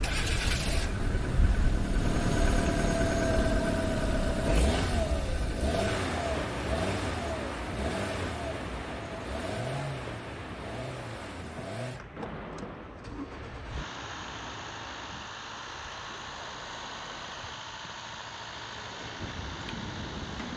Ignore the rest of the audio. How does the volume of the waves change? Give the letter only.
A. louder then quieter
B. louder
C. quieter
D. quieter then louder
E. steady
C.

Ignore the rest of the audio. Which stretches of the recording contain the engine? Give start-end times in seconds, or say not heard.
0.0-20.5.